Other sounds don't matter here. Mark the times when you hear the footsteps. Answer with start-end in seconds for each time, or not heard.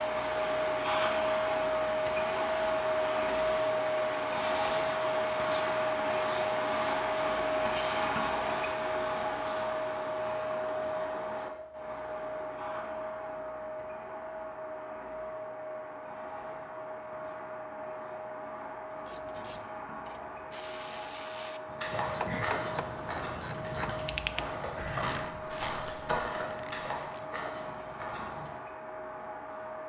21.6-28.5.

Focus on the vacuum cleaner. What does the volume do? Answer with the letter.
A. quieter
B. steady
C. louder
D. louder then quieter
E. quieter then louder
A.